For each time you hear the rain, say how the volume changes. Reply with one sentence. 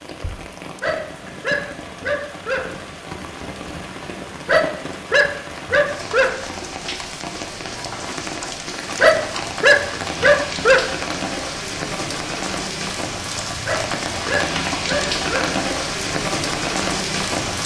You can hear the rain from 0.0 to 17.6 s, getting louder.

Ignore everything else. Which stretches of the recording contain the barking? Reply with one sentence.
You can hear the barking from 0.8 to 2.6 s, from 4.5 to 6.3 s, from 9.0 to 10.8 s and from 13.7 to 15.5 s.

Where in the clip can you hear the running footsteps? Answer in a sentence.
You can't hear the running footsteps here.